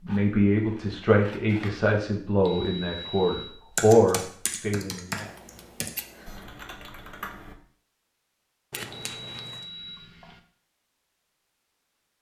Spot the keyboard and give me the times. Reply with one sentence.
You can hear the keyboard from 3.8 to 7.5 s.